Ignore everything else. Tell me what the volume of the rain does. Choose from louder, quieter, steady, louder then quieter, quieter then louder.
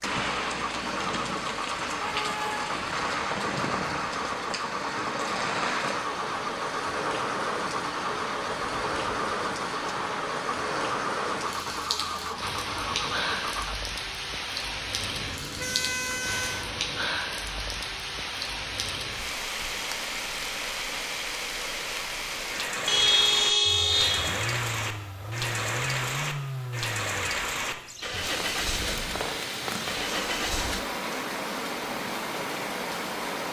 steady.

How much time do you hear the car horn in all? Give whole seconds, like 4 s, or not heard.
5 s.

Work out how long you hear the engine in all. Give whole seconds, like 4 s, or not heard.
21 s.